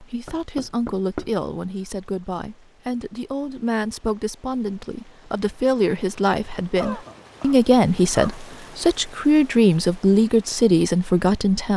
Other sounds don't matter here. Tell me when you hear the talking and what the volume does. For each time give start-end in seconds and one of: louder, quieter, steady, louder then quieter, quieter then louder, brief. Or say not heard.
0.0-11.7 louder.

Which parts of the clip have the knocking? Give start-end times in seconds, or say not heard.
0.2-1.4.